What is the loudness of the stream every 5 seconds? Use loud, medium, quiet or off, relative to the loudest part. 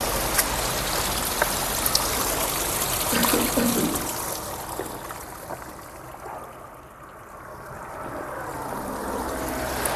loud, medium.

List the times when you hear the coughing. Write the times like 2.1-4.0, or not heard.
3.1-4.0.